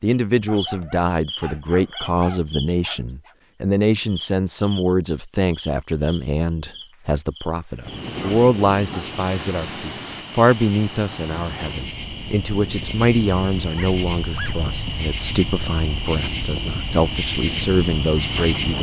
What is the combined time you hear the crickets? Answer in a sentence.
You can hear the crickets for 19 seconds altogether.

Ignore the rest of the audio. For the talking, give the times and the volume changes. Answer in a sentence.
You can hear the talking from 0.0 to 18.7 s, at a steady volume.